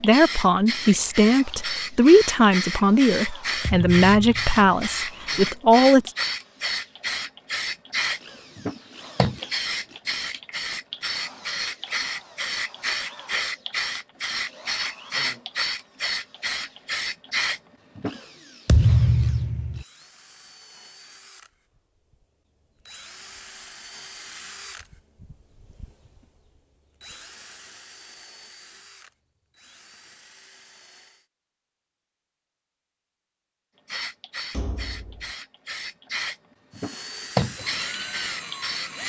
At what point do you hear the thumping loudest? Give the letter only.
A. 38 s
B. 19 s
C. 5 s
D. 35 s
B.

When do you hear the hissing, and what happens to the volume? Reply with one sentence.
The hissing can be heard from 0.0 to 18.2 s, at a steady volume; and from 33.9 to 39.0 s, getting louder then quieter.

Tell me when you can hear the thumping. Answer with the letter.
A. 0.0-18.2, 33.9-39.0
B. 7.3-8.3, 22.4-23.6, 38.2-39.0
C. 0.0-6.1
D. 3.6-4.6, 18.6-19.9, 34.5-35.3
D.